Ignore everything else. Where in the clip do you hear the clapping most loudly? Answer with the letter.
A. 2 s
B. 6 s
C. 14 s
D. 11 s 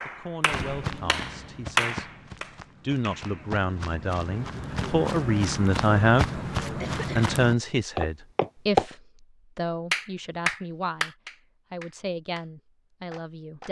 A.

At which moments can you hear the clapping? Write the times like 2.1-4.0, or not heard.
0.0-3.5, 9.9-12.4, 13.1-13.6.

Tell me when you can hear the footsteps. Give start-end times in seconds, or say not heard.
0.5-8.8.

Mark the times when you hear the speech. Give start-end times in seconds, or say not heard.
0.1-2.1, 2.8-13.6.